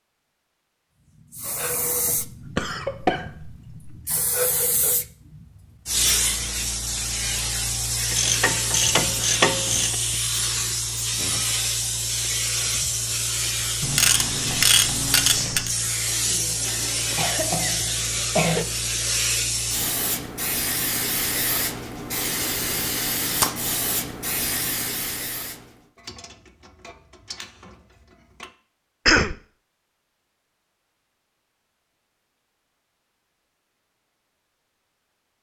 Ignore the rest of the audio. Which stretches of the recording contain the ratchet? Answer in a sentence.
You can hear the ratchet from 8.1 to 9.9 s, from 13.8 to 15.7 s and from 25.9 to 28.6 s.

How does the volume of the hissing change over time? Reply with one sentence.
The loudness of the hissing stays about the same.